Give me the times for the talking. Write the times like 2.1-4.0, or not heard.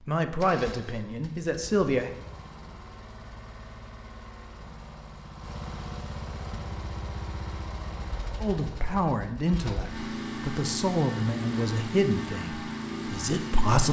0.1-2.1, 8.4-13.8.